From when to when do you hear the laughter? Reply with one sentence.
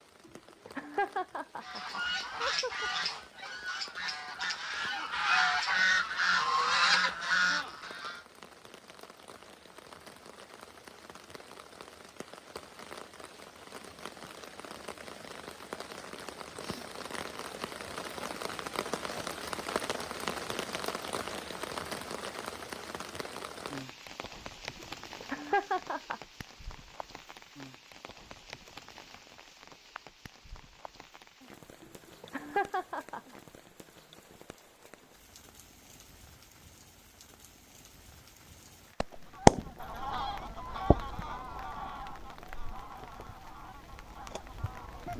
The laughter can be heard from 0.2 to 2.9 s, from 24.8 to 26.2 s and from 31.8 to 33.4 s.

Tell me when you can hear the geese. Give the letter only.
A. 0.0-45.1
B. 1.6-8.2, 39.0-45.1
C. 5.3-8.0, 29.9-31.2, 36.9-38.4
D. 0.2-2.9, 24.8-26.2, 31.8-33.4
B.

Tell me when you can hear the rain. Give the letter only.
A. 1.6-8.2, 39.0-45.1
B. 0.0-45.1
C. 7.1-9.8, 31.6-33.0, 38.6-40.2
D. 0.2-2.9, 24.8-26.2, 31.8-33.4
B.